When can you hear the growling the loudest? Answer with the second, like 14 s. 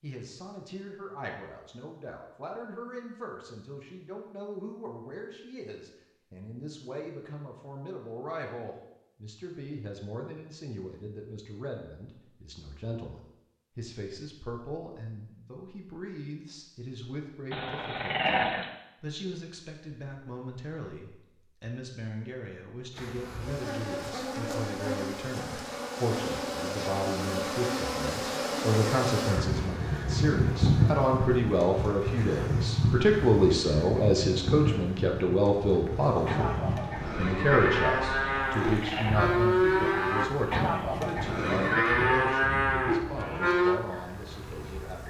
18 s.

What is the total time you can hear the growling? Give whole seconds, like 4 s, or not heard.
2 s.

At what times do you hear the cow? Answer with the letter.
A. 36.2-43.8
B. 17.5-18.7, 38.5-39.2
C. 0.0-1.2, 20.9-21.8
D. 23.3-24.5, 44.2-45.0
A.